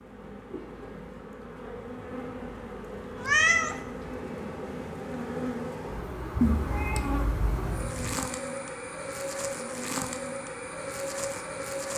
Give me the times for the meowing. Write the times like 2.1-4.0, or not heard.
3.2-3.8, 6.4-8.2.